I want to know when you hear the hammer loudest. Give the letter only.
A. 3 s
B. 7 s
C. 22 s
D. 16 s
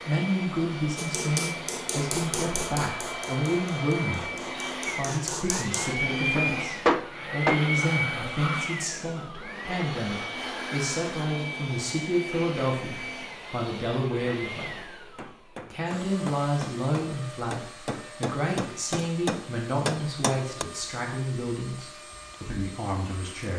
B.